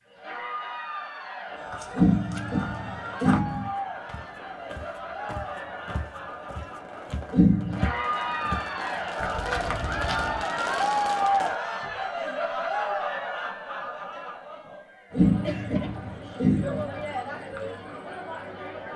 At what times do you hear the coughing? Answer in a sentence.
The coughing can be heard from 1.9 to 3.7 s, from 7.3 to 7.9 s and from 15.1 to 16.9 s.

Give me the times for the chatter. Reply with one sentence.
You can hear the chatter from 0.0 to 18.9 s.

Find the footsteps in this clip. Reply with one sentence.
The footsteps can be heard from 1.6 to 10.4 s.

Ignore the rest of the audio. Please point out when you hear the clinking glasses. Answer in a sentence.
You can't hear the clinking glasses here.